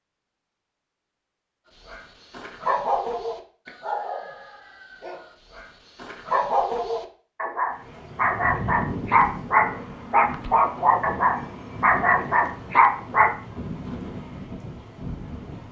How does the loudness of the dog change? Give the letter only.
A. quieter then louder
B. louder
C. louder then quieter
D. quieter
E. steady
B.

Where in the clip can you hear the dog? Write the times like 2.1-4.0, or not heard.
1.9-13.3.